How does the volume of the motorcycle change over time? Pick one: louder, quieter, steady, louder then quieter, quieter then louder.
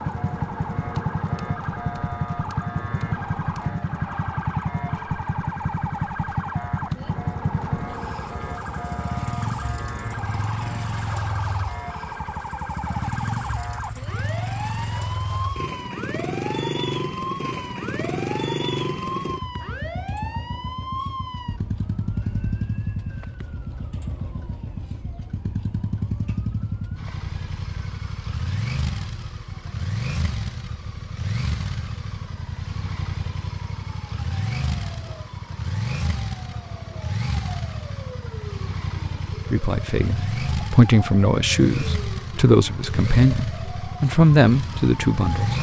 steady.